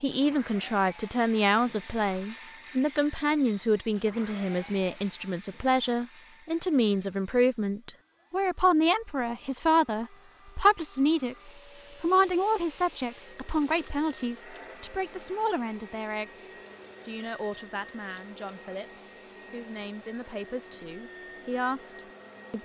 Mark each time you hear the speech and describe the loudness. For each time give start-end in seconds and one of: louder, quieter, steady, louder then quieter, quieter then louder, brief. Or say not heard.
0.0-22.6 quieter.